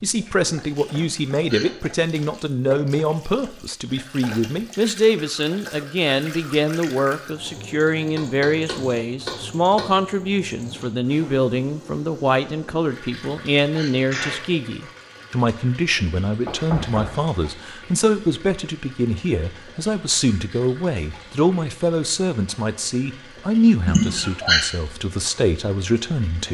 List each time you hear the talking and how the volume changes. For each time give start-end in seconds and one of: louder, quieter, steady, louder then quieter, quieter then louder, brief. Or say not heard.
0.0-26.4 steady.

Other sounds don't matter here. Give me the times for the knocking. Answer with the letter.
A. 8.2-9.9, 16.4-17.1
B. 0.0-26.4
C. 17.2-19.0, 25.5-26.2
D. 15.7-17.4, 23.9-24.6
A.